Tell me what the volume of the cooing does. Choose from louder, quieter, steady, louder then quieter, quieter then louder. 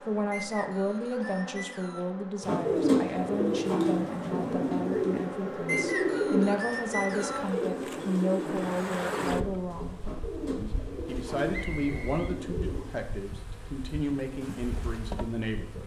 quieter.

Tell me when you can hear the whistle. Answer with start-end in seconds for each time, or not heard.
0.3-2.1, 5.7-7.5, 11.5-13.1.